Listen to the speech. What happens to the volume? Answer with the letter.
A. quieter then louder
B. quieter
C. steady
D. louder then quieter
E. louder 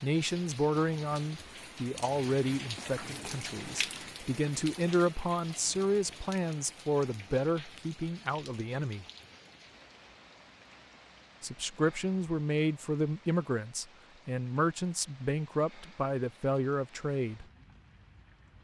C.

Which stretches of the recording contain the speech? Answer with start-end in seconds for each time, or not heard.
0.0-9.1, 11.4-17.4.